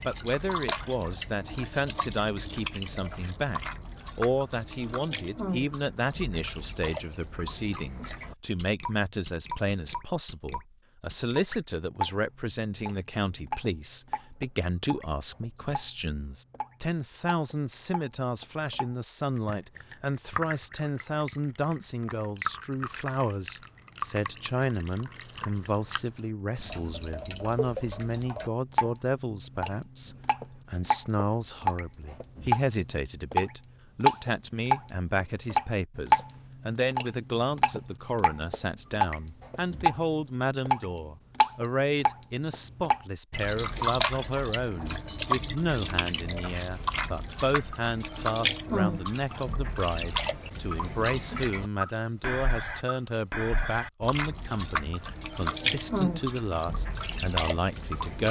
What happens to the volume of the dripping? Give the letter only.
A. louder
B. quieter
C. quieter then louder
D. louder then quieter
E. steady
A.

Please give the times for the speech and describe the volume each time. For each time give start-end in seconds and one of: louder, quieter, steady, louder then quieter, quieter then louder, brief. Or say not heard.
0.0-58.2 steady.